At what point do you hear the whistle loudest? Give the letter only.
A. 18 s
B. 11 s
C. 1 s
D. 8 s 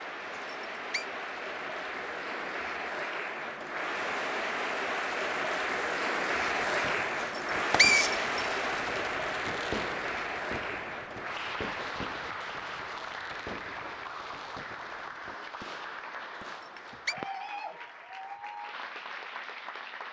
D.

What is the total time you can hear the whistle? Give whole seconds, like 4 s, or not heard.
2 s.